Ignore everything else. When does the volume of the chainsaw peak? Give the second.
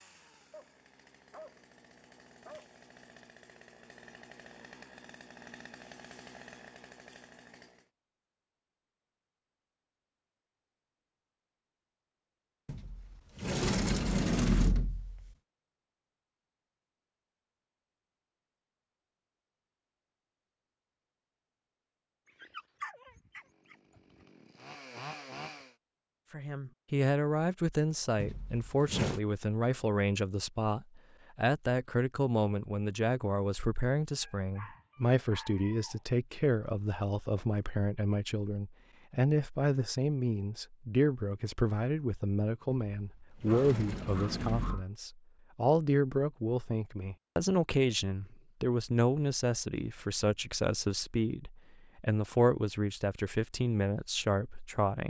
25 s.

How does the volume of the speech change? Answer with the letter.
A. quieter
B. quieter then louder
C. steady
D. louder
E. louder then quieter
C.